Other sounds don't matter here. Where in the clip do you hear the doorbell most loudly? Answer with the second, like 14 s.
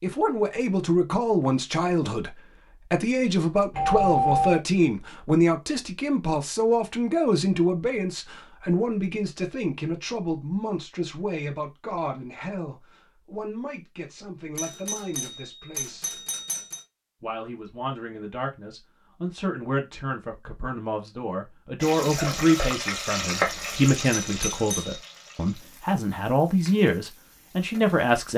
4 s.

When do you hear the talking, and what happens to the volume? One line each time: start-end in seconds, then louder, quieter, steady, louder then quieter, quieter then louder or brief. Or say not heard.
0.0-16.2 quieter
17.2-28.3 louder.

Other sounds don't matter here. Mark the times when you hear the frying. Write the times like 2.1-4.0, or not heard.
21.8-28.2.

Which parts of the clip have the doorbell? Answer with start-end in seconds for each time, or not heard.
3.7-4.6, 14.6-16.8, 24.2-25.0.